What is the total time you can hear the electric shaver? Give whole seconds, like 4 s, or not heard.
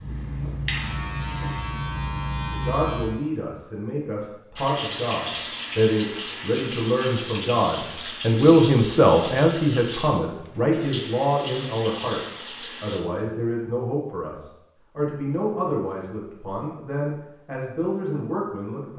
3 s.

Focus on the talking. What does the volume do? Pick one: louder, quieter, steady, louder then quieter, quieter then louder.
louder then quieter.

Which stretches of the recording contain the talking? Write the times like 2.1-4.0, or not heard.
2.5-18.9.